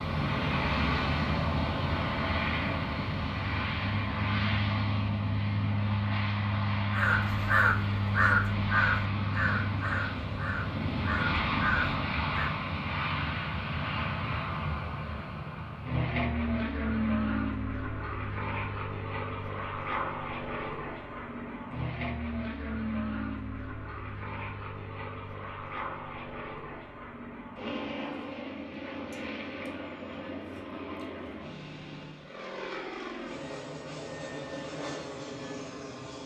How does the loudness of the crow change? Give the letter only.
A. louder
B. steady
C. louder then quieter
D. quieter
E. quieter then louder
E.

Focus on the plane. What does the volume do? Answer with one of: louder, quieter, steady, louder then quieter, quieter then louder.
quieter.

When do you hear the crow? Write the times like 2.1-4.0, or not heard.
6.9-12.5.